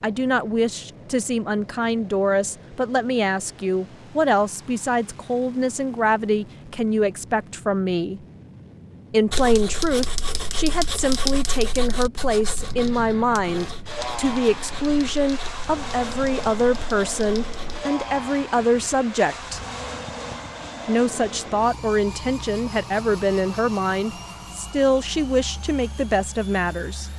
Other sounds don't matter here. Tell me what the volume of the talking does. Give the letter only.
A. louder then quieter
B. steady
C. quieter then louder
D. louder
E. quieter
B.